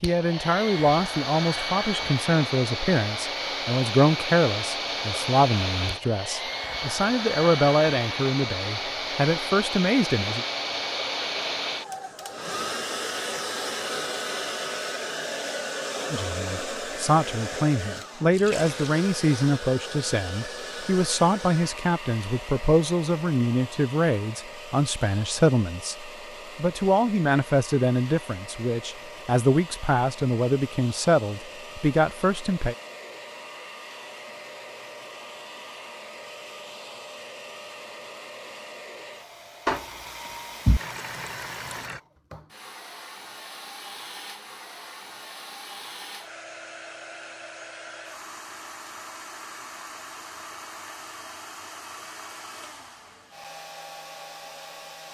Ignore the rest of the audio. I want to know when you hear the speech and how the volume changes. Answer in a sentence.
The speech can be heard from 0.0 to 10.4 s, at a steady volume; and from 16.1 to 32.8 s, at a steady volume.